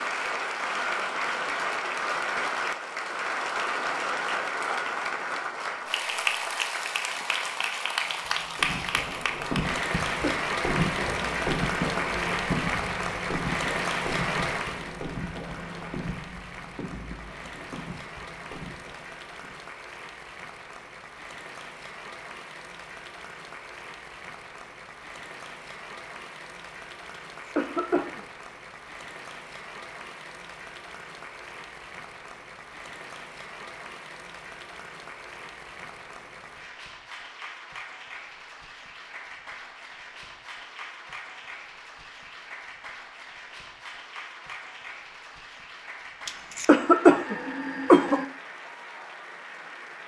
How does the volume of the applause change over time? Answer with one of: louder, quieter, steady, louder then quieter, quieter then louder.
quieter.